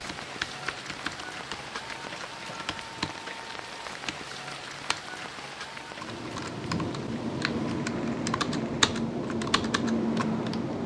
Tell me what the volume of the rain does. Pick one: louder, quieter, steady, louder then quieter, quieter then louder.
quieter.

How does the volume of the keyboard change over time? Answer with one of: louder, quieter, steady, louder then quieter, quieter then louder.
louder.